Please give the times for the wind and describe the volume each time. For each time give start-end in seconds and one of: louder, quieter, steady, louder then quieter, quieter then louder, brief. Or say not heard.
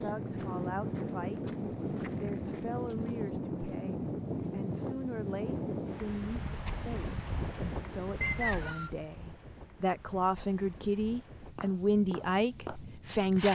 0.0-13.5 quieter.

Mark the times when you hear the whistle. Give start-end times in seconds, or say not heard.
8.2-8.9.